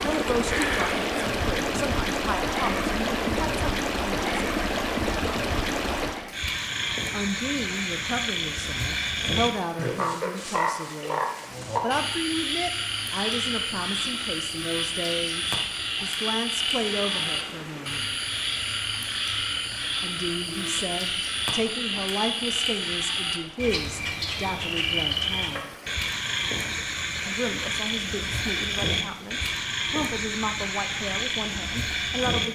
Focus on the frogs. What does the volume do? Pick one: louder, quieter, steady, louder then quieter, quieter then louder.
steady.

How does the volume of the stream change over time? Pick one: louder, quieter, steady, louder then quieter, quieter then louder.
quieter.